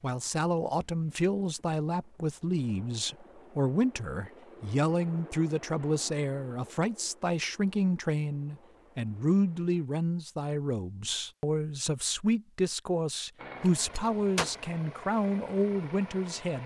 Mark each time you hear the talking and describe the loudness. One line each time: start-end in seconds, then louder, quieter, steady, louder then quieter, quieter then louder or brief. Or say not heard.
0.0-16.6 steady.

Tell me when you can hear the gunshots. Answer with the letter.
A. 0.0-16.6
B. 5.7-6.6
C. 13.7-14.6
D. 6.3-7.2
C.